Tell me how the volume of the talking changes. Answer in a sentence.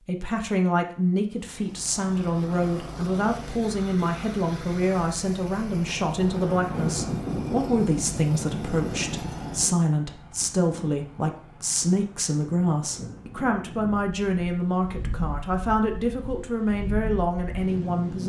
The loudness of the talking stays about the same.